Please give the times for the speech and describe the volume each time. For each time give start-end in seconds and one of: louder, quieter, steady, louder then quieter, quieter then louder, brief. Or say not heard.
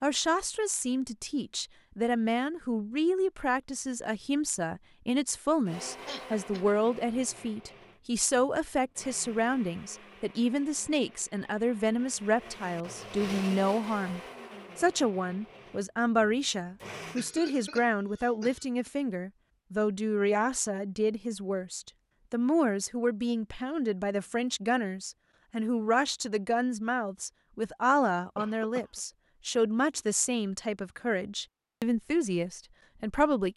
0.0-33.5 steady.